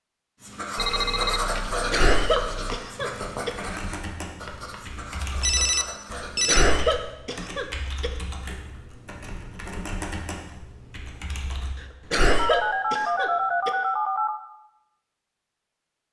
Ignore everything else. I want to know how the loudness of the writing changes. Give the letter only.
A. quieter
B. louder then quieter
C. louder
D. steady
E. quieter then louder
A.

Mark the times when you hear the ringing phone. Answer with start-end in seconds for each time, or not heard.
0.8-2.8, 5.4-6.7, 12.3-14.4.